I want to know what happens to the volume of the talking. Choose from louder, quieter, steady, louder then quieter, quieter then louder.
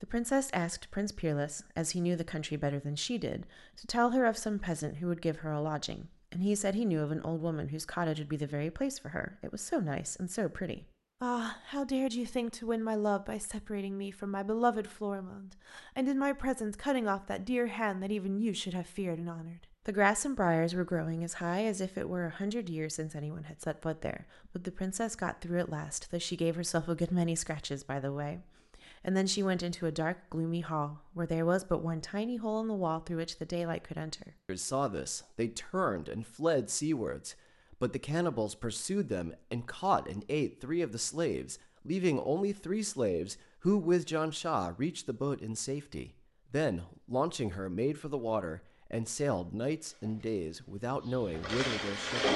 steady.